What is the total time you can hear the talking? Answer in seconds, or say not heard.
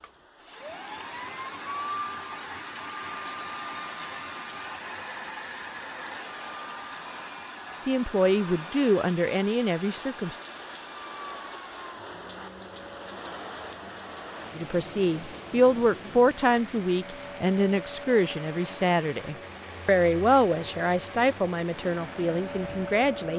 11 s.